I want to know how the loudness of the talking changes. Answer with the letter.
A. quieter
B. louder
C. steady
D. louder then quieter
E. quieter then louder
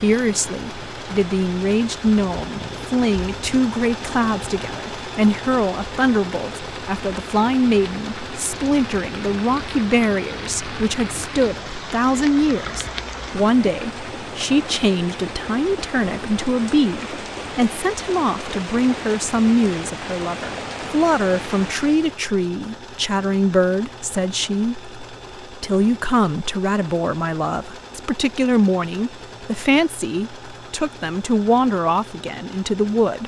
C.